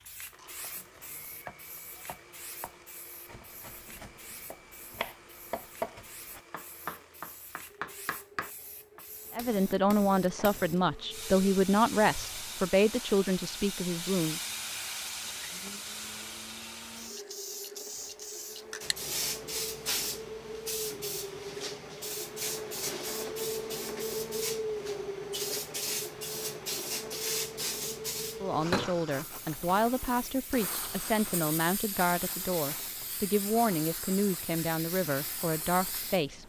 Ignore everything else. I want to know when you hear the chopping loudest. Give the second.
6 s.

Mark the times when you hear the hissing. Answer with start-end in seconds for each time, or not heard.
0.0-36.4.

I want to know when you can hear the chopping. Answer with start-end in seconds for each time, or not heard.
0.6-9.1.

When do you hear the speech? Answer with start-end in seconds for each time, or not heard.
9.3-14.4, 28.4-36.4.